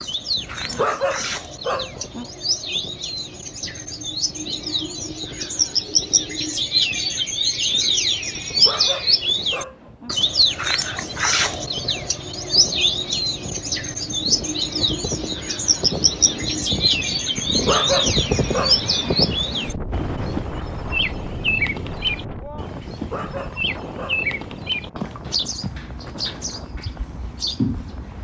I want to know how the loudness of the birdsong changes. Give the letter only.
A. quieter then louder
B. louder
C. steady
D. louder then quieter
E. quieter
D.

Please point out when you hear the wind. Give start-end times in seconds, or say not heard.
0.0-28.1.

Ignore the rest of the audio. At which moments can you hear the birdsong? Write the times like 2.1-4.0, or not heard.
0.0-28.1.